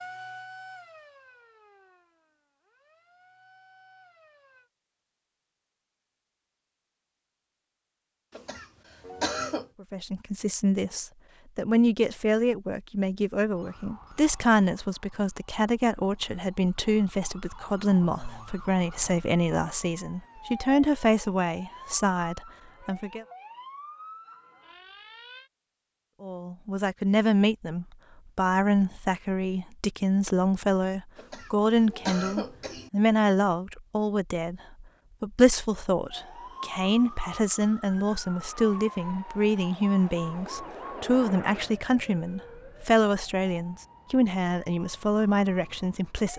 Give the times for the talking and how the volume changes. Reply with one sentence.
You can hear the talking from 9.8 to 23.2 s, at a steady volume; and from 26.2 to 46.3 s, at a steady volume.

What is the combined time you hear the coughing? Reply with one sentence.
You can hear the coughing for 3 seconds altogether.